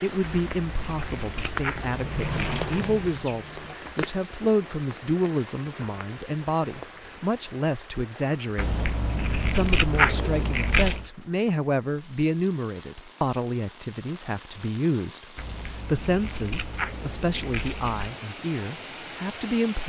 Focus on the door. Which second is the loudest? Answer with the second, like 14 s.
2 s.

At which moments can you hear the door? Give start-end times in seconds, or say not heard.
1.8-3.8.